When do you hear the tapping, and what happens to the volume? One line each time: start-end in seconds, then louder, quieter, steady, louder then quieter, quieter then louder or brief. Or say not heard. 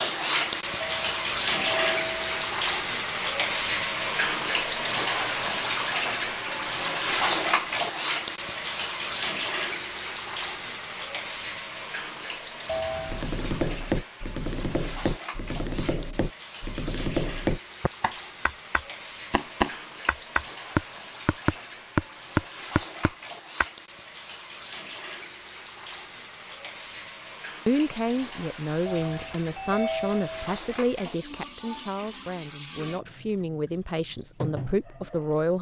13.1-23.6 louder.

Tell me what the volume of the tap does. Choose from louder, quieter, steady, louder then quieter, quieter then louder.
quieter.